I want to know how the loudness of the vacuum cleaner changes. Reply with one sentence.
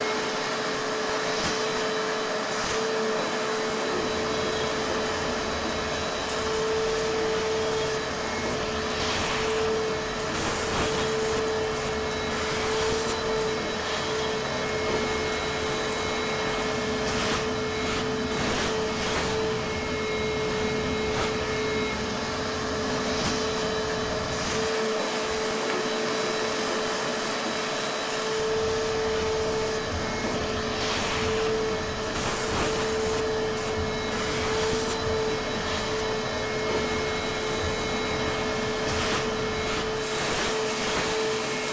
The volume of the vacuum cleaner stays about the same.